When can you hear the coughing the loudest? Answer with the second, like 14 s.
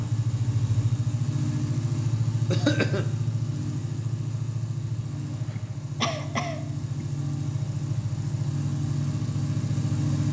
3 s.